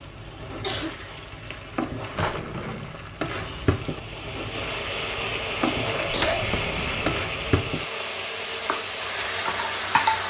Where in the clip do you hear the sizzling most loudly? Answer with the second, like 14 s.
10 s.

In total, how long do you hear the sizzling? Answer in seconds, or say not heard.
10 s.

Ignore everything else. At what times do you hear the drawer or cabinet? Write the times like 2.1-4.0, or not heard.
2.1-3.0, 6.1-7.2.